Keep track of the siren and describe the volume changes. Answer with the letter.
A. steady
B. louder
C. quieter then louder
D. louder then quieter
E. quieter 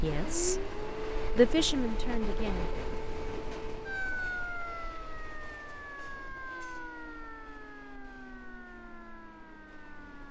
E.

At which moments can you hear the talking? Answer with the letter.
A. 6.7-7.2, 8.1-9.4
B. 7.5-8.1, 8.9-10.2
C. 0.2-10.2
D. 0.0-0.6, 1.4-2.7
D.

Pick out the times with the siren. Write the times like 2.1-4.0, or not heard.
0.2-10.2.